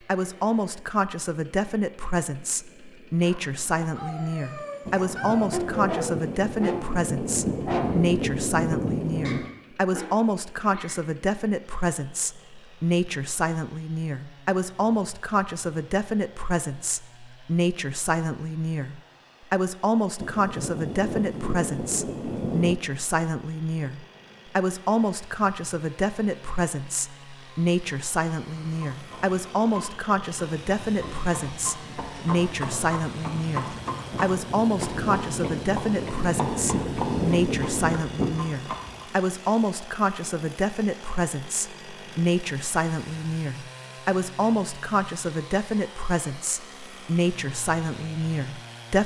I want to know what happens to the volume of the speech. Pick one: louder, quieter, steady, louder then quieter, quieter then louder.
steady.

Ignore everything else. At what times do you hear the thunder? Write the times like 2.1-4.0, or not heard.
4.8-9.6, 20.1-22.8, 34.1-38.0.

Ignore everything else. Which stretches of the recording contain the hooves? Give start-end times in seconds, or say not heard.
28.5-39.0.